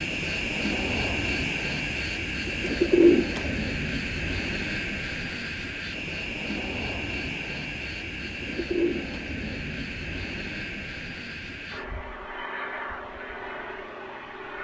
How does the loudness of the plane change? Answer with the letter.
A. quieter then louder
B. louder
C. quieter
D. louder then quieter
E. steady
C.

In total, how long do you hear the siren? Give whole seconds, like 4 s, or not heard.
not heard.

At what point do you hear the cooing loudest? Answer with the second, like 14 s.
3 s.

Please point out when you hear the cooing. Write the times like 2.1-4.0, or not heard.
2.5-3.5, 8.5-9.3.